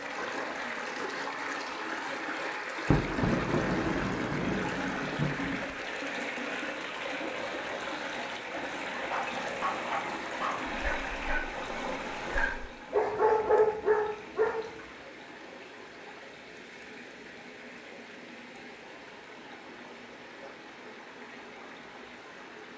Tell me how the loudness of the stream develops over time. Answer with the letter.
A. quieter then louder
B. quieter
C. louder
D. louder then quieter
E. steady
B.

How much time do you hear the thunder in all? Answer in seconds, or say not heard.
3 s.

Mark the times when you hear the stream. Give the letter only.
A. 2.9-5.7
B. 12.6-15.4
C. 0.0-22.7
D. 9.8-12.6
C.